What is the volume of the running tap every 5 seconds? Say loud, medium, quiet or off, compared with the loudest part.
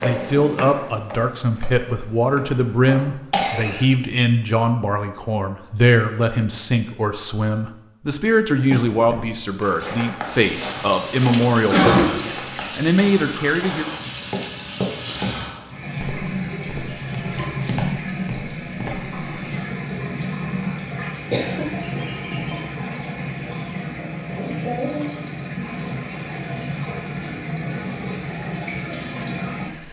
off, off, loud, loud, loud, loud.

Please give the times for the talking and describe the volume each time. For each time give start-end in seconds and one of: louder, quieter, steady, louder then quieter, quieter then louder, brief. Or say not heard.
0.0-13.8 steady.